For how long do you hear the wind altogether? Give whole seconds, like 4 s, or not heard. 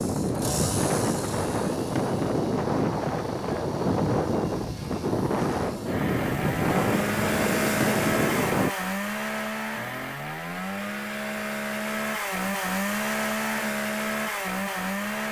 9 s.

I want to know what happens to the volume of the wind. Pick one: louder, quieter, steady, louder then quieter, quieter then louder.
steady.